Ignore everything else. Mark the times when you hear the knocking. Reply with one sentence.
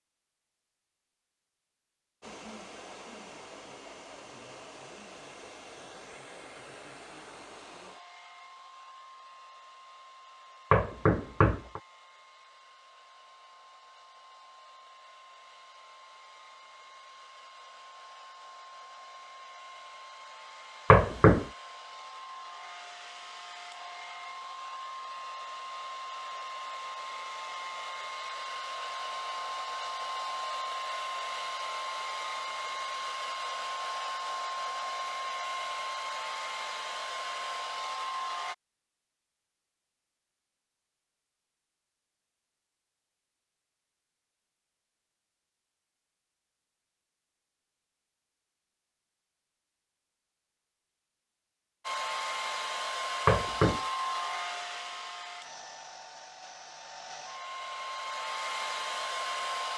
You can hear the knocking from 10.7 to 11.8 s, from 20.9 to 21.4 s and from 53.2 to 53.8 s.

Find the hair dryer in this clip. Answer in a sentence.
You can hear the hair dryer from 2.2 to 38.5 s and from 51.9 to 59.7 s.